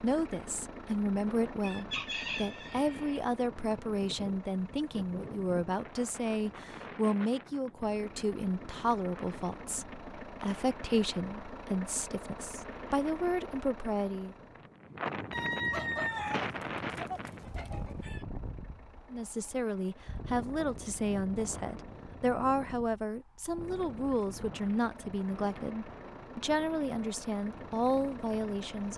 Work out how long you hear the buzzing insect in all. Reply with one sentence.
The buzzing insect can't be heard in this clip.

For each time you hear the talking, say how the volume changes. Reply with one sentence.
You can hear the talking from 0.0 to 14.3 s, at a steady volume; and from 19.1 to 28.9 s, at a steady volume.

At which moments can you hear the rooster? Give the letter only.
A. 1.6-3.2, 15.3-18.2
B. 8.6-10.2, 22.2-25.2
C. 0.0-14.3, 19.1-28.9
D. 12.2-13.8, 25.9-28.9
A.